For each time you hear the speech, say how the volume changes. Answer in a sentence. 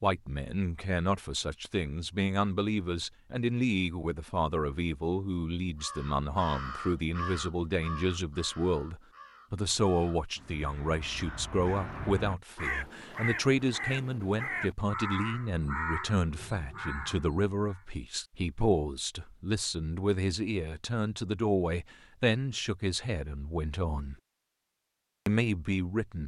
The speech can be heard from 0.0 to 24.1 s, at a steady volume; and briefly from 25.2 to 26.2 s.